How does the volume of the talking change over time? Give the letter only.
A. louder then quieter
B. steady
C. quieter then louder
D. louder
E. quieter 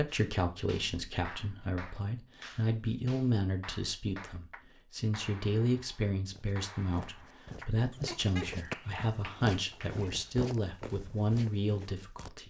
B.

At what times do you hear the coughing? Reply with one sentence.
You can hear the coughing from 7.9 to 8.5 s.